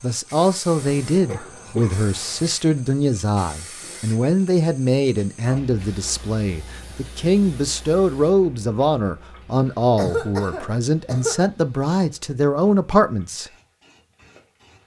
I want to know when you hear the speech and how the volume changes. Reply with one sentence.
You can hear the speech from 0.0 to 13.5 s, at a steady volume.